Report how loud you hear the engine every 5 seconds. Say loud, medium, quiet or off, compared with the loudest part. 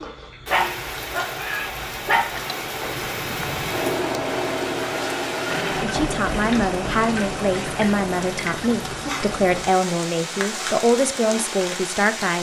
loud, loud, off.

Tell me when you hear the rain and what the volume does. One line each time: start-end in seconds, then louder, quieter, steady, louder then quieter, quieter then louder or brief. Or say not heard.
0.0-12.3 steady.